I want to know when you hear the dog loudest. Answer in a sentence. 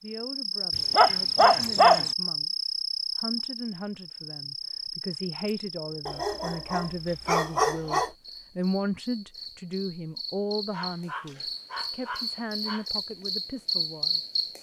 The volume of the dog peaks at 2 seconds.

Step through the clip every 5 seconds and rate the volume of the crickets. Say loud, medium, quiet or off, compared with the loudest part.
loud, medium, loud.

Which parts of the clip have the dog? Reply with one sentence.
You can hear the dog from 0.8 to 2.1 s, from 6.0 to 8.1 s and from 10.7 to 12.8 s.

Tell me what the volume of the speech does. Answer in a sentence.
The volume of the speech goes up, then down.